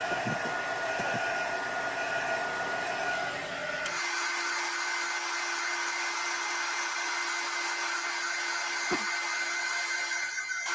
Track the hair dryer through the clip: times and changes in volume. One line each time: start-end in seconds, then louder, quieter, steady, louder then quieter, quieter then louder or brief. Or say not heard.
0.0-10.6 steady.